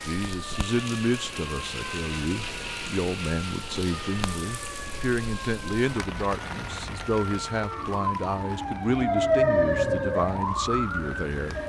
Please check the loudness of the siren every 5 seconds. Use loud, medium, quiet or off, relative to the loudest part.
quiet, loud, loud.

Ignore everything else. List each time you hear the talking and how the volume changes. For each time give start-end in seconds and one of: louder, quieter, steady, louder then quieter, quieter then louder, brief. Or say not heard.
0.1-11.6 steady.